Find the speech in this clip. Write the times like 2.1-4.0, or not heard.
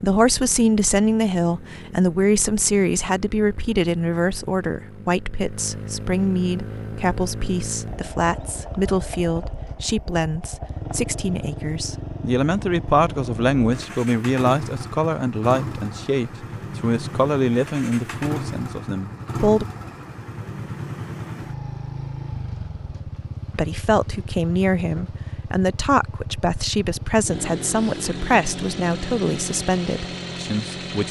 0.0-19.6, 23.6-31.0.